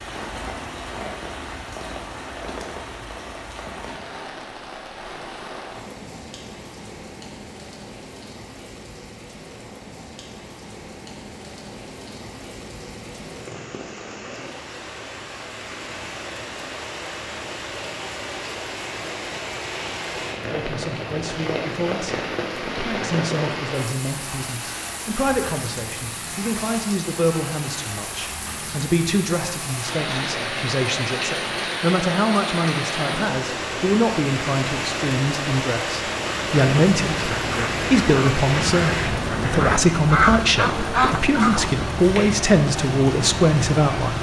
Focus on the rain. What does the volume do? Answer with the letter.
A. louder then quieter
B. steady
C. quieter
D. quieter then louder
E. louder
E.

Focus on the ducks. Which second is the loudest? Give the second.
40 s.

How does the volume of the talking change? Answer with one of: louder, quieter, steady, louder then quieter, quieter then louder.
louder.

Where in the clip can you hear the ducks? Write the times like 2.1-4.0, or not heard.
36.1-41.6.